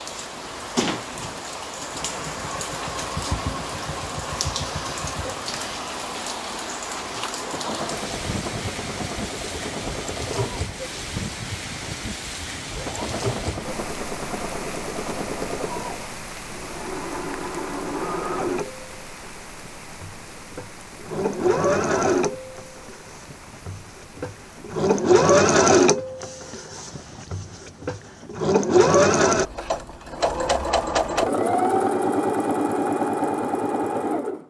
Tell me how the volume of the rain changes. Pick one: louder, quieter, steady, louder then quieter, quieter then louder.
quieter.